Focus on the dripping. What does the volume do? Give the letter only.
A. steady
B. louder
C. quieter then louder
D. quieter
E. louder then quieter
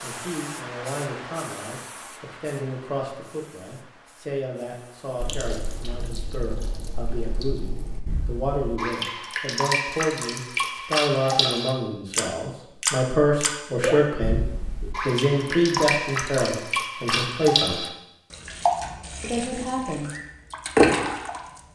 B.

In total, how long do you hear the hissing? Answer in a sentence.
The hissing can be heard for 6 seconds in total.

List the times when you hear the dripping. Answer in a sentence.
The dripping can be heard from 5.2 to 21.6 s.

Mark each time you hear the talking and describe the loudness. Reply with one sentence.
You can hear the talking from 0.0 to 17.9 s, getting louder; and briefly from 19.2 to 20.1 s.